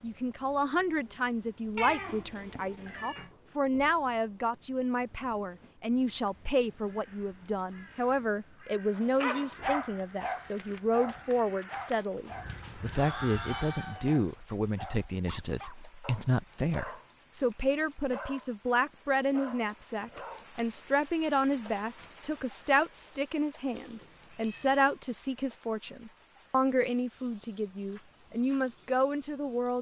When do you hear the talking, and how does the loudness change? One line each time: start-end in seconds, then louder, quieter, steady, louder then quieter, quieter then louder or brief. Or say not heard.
0.0-29.7 steady.